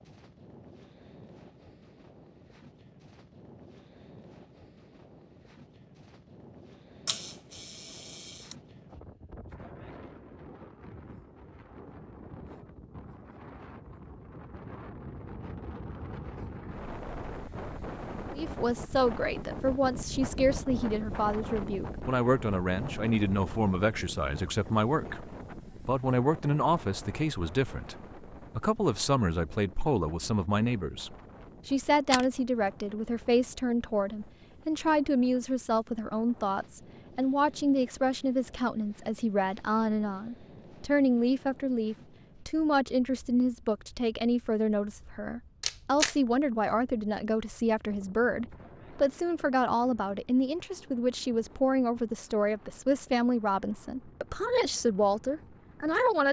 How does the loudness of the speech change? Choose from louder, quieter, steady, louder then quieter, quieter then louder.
steady.